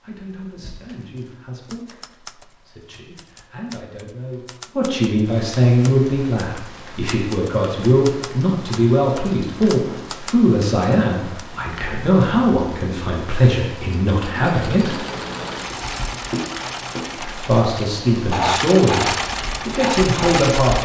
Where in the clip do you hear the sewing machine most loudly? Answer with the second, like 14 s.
19 s.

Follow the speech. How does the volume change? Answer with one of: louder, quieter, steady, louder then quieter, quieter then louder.
louder.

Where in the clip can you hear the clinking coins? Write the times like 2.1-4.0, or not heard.
not heard.